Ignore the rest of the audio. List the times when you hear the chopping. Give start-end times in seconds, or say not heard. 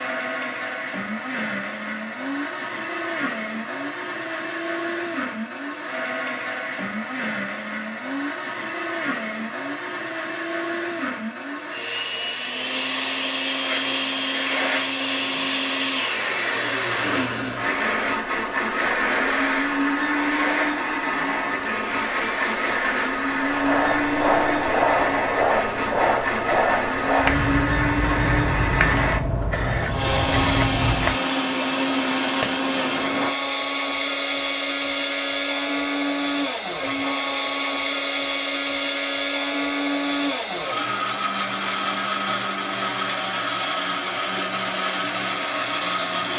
not heard.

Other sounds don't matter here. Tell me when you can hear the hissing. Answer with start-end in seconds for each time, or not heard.
13.6-33.4.